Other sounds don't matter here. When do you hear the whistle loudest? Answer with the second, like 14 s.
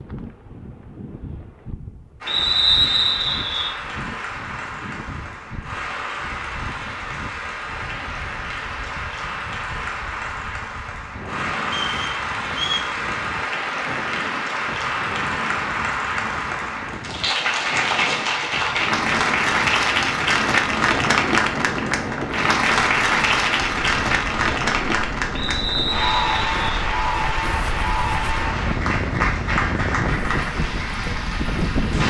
3 s.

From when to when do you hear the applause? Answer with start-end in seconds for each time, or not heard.
2.2-32.0.